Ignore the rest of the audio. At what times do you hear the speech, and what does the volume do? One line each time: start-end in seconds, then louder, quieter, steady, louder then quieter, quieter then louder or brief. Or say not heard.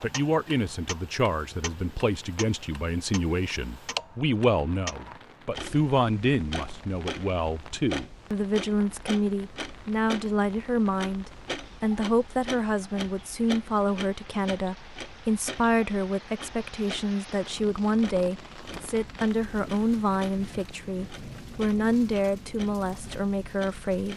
0.0-24.1 steady.